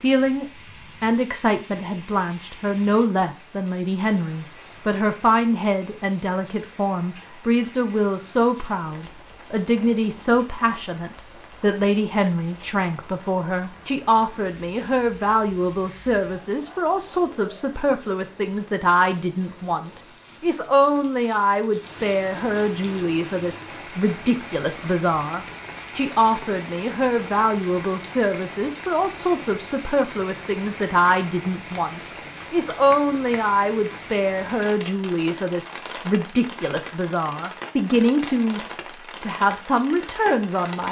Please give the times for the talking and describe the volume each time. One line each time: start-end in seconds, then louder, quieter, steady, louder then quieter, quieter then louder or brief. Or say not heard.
0.0-38.6 steady
39.2-40.8 brief.